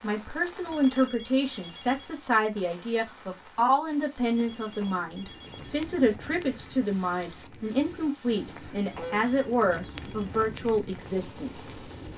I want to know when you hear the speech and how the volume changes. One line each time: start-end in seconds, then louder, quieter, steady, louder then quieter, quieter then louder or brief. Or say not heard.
0.0-11.8 steady.